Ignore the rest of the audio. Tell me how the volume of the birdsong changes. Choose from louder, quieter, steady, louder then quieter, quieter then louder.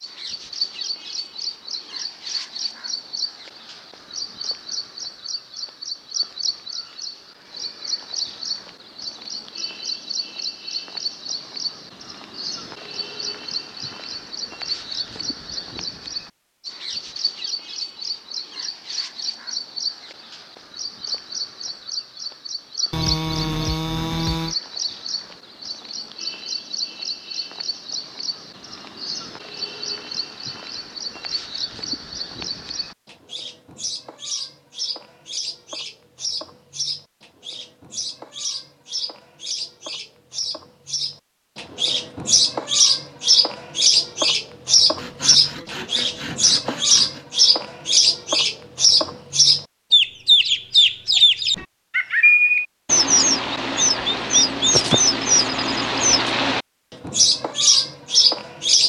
louder.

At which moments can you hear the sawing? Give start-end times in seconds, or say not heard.
22.9-24.6, 45.0-47.2.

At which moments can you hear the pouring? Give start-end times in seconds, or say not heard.
not heard.